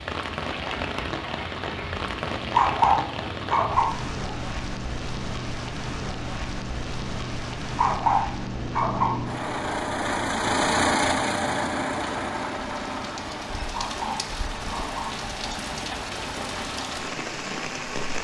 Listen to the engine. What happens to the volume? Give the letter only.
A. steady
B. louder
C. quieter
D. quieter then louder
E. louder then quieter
E.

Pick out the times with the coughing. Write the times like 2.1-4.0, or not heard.
not heard.